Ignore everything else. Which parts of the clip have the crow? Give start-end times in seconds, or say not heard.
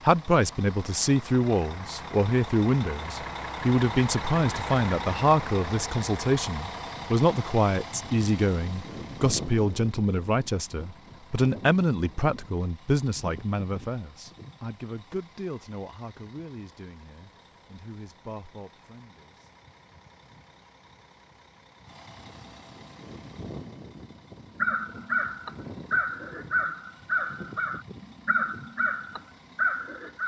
24.6-30.2.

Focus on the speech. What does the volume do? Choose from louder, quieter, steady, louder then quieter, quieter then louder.
quieter.